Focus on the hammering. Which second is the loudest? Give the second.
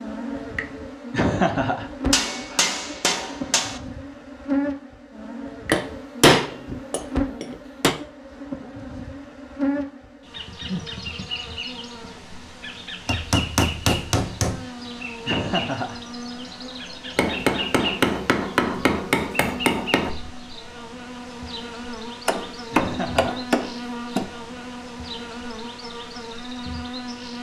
6 s.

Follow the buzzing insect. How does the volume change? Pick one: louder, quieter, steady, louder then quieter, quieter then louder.
steady.